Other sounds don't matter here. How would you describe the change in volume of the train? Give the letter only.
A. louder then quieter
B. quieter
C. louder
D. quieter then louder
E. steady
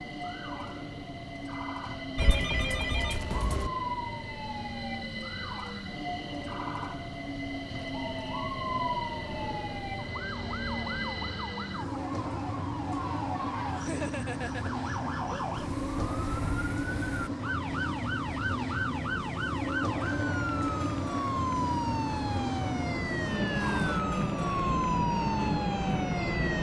C.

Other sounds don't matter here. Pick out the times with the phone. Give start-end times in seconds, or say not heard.
2.1-3.7.